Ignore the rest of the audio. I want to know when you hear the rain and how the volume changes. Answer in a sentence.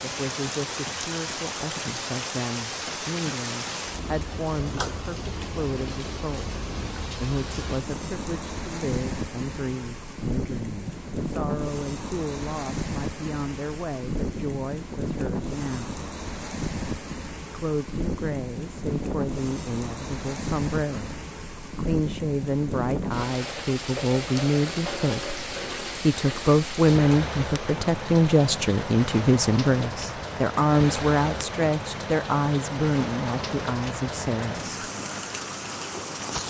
You can hear the rain from 0.0 to 36.4 s, at a steady volume.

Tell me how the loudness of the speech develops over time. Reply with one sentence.
The loudness of the speech goes up.